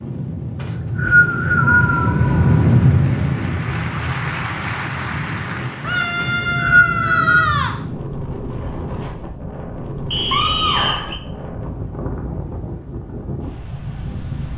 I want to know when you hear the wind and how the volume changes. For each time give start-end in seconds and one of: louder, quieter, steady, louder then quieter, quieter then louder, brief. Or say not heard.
0.0-14.5 quieter.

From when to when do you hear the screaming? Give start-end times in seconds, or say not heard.
1.6-3.0, 5.8-7.8, 10.3-11.2.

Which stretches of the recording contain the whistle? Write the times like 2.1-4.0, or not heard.
0.6-2.1, 6.2-7.5, 10.1-11.2.